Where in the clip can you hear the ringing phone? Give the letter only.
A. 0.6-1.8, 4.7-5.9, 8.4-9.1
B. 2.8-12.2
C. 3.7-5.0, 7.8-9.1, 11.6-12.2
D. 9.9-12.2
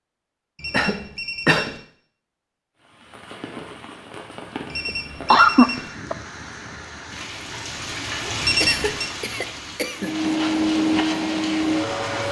A.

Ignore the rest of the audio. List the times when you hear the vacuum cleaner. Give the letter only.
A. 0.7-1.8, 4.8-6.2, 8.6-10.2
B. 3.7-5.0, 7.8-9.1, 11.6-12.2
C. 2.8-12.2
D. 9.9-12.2
D.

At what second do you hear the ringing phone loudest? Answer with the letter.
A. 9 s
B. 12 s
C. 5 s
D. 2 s
A.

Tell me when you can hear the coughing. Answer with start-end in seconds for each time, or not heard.
0.7-1.8, 4.8-6.2, 8.6-10.2.